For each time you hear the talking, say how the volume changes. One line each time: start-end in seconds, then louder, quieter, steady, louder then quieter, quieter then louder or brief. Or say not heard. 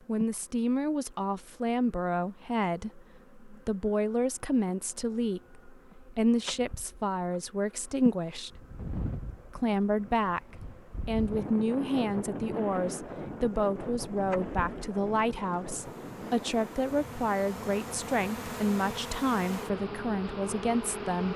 0.1-8.5 steady
9.6-21.3 steady.